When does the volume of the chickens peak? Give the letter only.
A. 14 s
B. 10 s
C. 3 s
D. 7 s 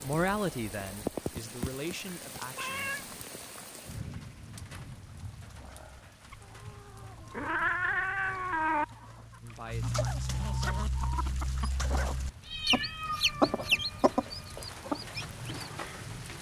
A.